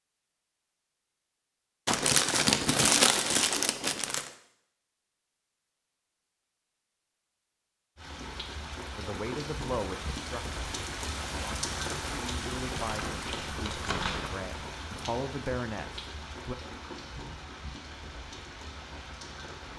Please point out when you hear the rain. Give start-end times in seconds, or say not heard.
8.0-19.7.